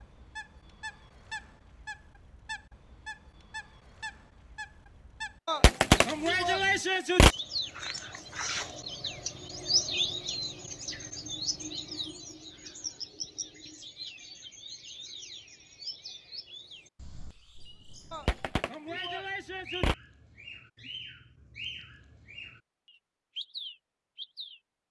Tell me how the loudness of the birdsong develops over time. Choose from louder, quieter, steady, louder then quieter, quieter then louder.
louder then quieter.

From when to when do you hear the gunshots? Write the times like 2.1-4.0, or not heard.
5.5-7.3, 18.1-19.9.